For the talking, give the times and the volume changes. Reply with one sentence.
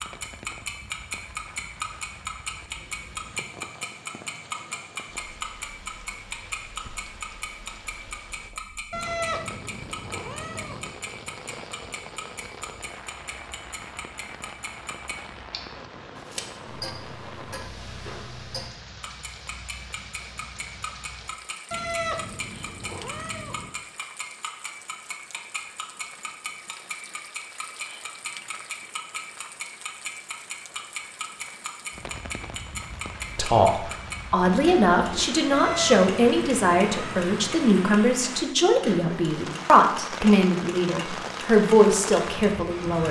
The talking can be heard from 33.4 to 43.0 s, at a steady volume.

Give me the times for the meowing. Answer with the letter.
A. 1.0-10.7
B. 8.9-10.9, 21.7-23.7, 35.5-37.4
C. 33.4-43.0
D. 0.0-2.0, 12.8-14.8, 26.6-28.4
B.